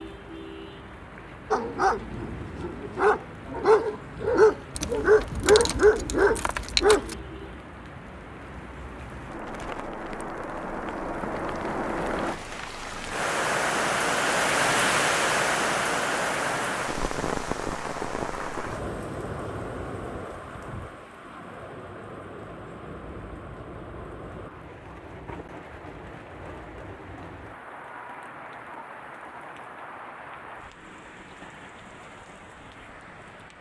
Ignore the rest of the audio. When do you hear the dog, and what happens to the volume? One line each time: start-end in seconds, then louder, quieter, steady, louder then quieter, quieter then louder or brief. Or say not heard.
1.5-7.0 louder.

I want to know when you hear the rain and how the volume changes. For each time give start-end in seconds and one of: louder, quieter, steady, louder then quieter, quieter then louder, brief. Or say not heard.
0.0-33.5 louder then quieter.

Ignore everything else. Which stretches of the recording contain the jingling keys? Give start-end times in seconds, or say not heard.
4.7-7.2.